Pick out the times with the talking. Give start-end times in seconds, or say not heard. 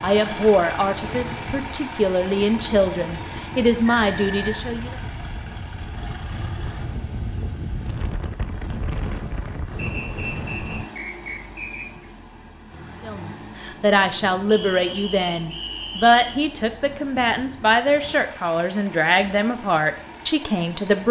0.0-5.0, 13.1-21.0.